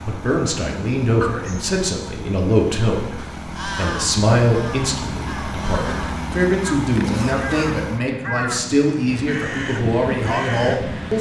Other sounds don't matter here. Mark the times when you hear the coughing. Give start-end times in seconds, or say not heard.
1.2-1.8, 7.0-7.8.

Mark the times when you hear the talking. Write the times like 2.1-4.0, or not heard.
0.1-11.1.